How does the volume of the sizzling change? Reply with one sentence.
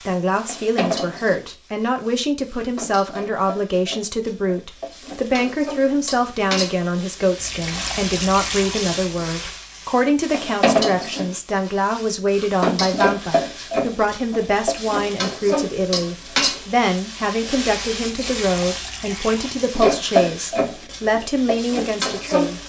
The volume of the sizzling goes up.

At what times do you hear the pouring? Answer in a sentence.
You can hear the pouring from 7.3 to 8.9 s and from 18.1 to 19.7 s.